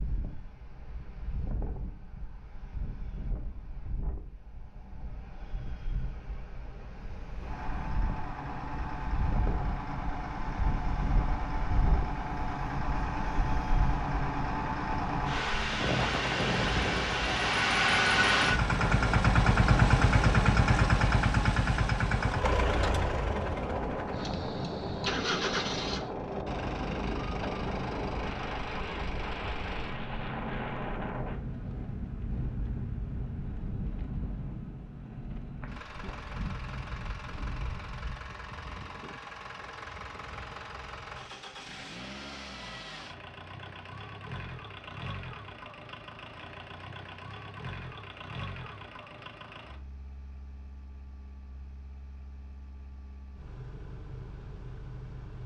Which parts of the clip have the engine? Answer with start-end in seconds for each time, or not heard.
7.3-55.4.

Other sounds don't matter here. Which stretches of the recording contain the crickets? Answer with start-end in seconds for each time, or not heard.
not heard.